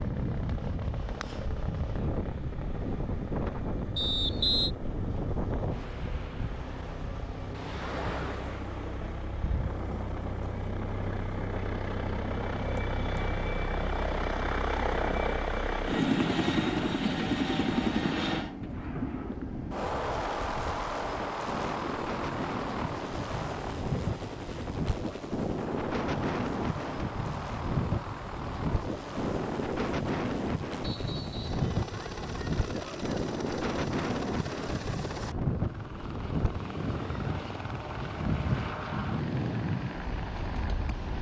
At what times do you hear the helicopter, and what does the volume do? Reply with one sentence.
The helicopter can be heard from 0.0 to 41.1 s, getting louder then quieter.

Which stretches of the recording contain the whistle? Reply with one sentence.
The whistle can be heard from 4.0 to 4.7 s and from 30.8 to 31.6 s.